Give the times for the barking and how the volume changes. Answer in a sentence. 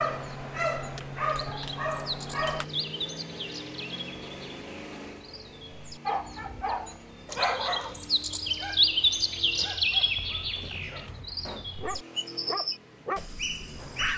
You can hear the barking briefly from 0.0 to 2.6 s; and from 6.0 to 14.1 s, getting quieter then louder.